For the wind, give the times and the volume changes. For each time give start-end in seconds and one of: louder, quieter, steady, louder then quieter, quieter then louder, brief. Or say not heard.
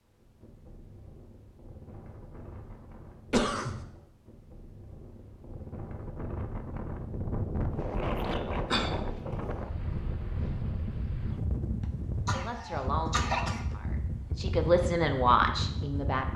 0.0-16.3 louder.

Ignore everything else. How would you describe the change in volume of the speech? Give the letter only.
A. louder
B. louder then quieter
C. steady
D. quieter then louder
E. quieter
D.